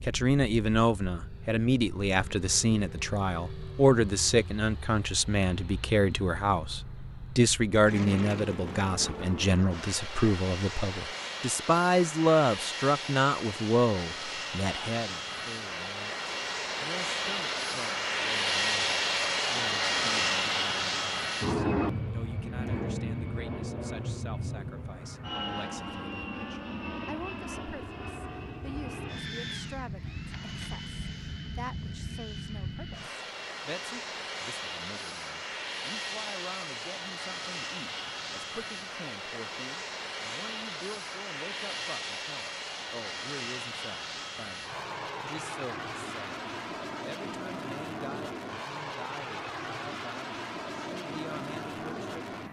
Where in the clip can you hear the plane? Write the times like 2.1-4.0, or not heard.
0.0-52.4.